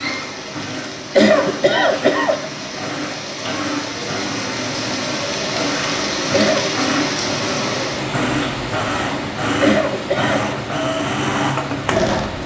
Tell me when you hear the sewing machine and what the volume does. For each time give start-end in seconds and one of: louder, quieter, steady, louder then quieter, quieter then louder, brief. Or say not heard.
0.0-12.4 louder.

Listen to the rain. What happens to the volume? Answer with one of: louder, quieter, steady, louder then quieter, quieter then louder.
louder then quieter.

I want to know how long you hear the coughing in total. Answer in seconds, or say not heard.
3 s.